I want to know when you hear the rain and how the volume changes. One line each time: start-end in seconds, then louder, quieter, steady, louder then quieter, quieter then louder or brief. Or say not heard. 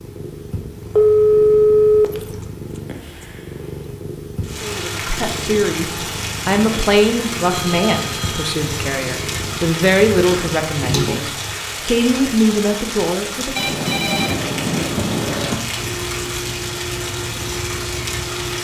4.4-18.6 steady.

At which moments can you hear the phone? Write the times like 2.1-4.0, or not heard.
0.9-2.0, 7.5-8.6, 13.6-15.6.